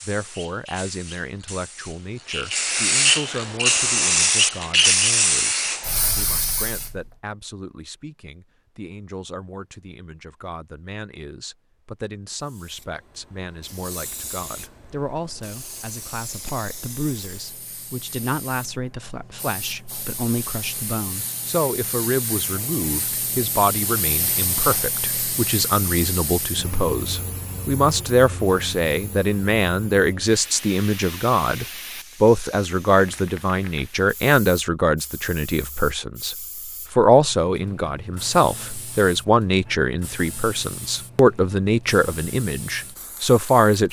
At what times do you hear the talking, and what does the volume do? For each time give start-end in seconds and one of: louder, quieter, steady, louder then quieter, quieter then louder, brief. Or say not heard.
0.1-43.8 louder.